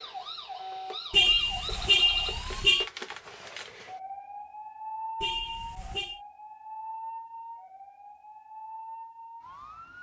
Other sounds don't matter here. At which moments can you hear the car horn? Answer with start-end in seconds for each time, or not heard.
1.1-2.9, 5.2-6.2.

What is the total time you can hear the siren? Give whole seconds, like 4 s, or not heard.
10 s.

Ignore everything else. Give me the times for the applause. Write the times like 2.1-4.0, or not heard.
not heard.